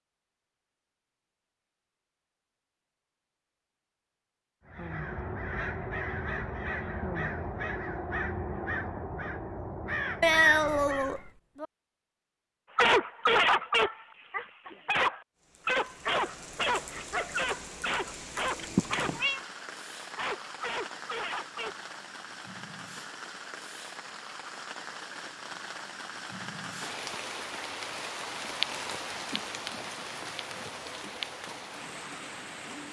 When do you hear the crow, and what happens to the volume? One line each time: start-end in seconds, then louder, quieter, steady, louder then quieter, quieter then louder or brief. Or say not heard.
4.7-11.3 steady.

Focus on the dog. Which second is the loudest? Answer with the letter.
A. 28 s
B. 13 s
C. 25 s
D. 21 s
B.